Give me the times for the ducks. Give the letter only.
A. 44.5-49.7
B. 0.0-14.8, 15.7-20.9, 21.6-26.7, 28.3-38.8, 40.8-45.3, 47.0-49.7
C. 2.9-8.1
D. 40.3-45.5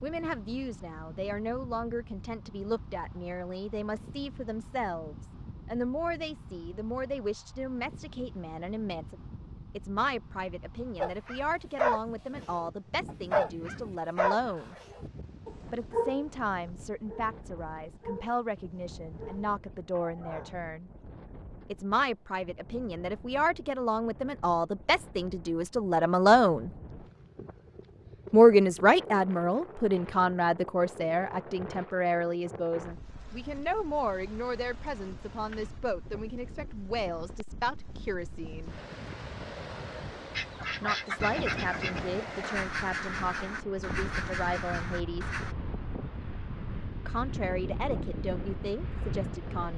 D.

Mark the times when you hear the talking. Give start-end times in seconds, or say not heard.
0.0-14.8, 15.7-20.9, 21.6-26.7, 28.3-38.8, 40.8-45.3, 47.0-49.7.